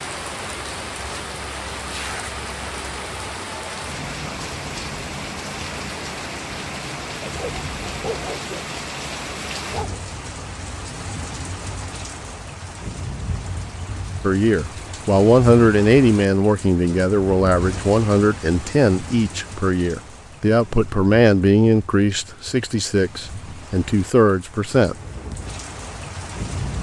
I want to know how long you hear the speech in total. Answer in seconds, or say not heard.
11 s.